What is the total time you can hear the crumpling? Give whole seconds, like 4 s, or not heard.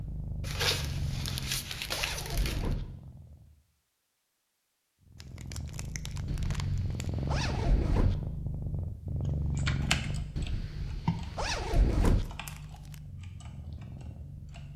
5 s.